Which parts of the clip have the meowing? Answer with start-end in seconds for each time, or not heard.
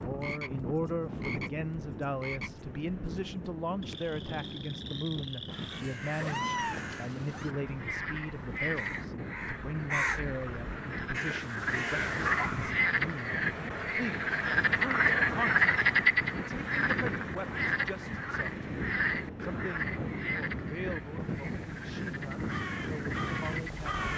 6.2-7.5.